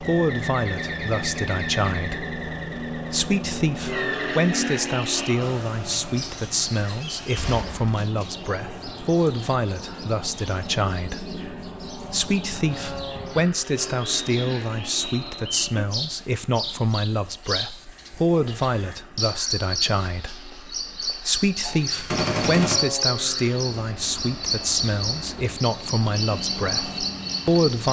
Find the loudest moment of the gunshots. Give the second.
22 s.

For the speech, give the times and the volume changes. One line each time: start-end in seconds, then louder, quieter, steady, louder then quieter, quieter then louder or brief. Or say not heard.
0.0-27.8 steady.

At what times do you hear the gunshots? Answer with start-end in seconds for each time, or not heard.
7.3-8.3, 21.6-22.8.